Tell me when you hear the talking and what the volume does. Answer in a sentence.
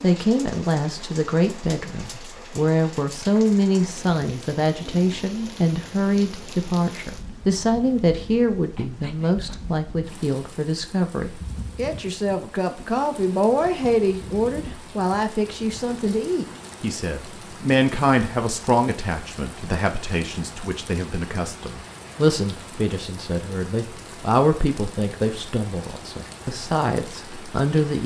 The talking can be heard from 0.0 to 28.0 s, at a steady volume.